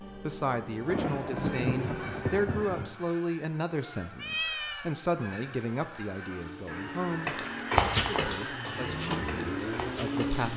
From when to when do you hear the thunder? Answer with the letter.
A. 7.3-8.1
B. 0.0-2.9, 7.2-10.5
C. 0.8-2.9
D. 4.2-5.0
C.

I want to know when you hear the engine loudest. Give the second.
10 s.